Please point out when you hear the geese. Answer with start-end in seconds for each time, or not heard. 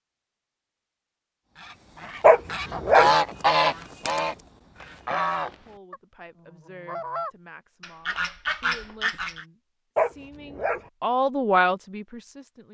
1.6-9.4.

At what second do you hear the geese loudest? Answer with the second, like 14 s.
3 s.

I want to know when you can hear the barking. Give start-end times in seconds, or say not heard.
2.2-3.1, 9.9-10.8.